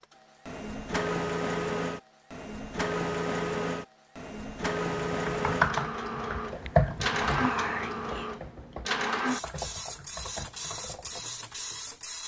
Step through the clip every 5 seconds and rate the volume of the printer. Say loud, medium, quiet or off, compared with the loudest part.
loud, loud, medium.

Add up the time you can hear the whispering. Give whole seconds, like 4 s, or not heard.
2 s.